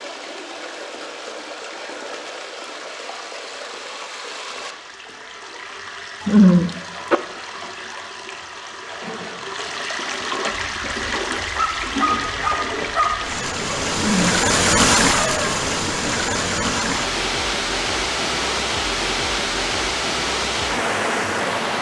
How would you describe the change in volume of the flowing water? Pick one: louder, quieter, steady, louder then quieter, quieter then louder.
louder.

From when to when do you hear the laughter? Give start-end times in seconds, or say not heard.
6.2-7.2, 13.9-14.4.